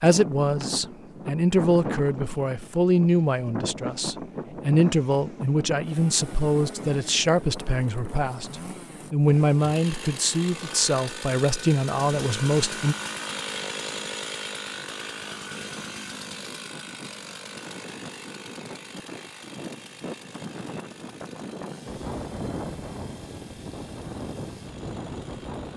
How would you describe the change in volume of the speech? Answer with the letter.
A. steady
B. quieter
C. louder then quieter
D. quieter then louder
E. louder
A.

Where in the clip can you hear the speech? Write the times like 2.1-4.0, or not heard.
0.0-12.9.